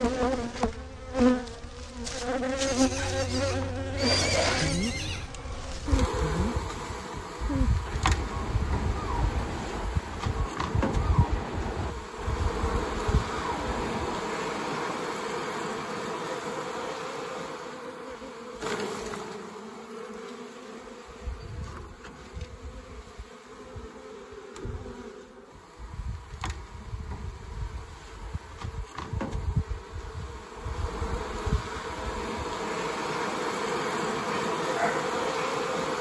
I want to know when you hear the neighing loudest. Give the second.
4 s.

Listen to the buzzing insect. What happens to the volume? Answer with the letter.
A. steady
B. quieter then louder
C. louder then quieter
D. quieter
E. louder
B.